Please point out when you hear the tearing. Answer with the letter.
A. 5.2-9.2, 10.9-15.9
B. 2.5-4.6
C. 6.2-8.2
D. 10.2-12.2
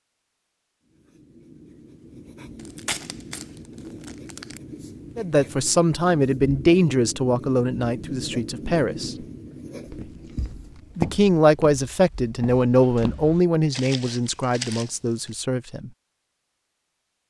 B.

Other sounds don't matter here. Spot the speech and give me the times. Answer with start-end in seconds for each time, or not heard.
5.2-9.2, 10.9-15.9.